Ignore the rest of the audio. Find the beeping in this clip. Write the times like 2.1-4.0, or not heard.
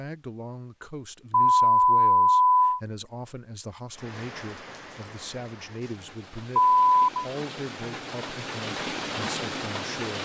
1.3-2.8, 6.5-7.2.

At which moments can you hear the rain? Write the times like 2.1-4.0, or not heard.
3.9-10.1.